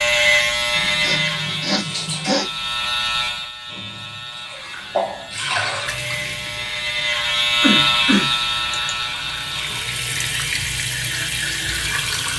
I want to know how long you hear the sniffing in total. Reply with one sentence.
You can hear the sniffing for 3 seconds altogether.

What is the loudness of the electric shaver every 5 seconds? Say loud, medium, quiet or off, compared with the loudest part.
loud, loud, quiet.